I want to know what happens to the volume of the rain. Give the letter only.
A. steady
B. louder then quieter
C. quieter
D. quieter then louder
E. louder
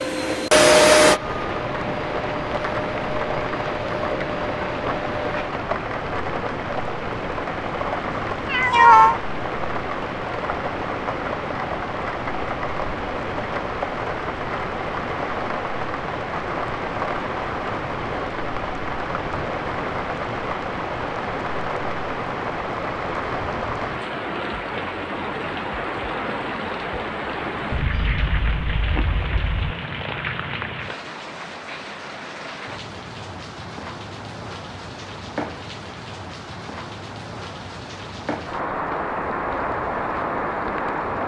A.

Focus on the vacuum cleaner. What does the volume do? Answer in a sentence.
The volume of the vacuum cleaner goes down.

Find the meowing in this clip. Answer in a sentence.
The meowing can be heard from 8.4 to 9.2 s and from 27.7 to 29.8 s.